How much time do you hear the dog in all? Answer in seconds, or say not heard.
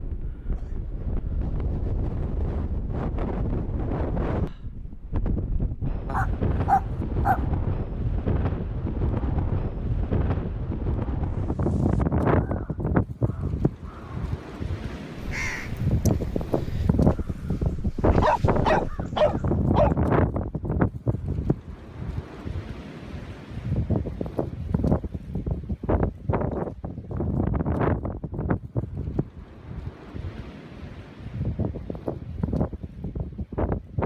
3 s.